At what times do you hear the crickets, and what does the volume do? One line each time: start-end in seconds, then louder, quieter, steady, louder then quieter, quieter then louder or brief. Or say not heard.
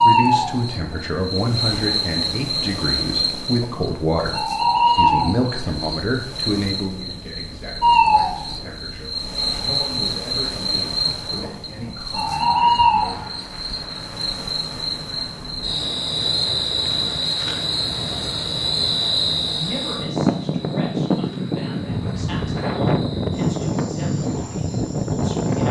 0.0-25.6 quieter.